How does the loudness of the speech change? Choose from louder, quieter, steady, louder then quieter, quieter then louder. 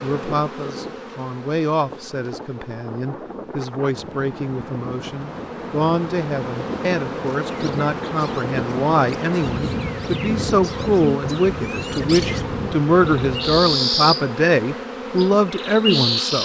louder.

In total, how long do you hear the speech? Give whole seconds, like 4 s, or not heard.
16 s.